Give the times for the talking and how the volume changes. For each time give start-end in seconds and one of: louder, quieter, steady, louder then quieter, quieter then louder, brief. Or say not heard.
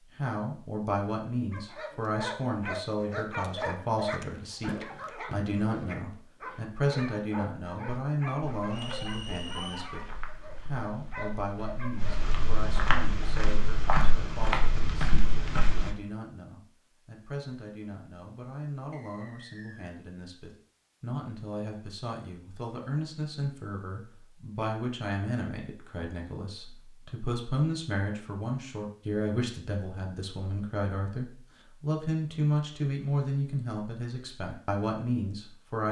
0.1-10.0 steady
10.6-35.8 louder.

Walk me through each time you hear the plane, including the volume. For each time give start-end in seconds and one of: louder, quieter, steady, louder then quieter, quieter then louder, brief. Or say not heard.
not heard.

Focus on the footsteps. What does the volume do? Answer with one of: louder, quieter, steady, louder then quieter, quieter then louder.
louder.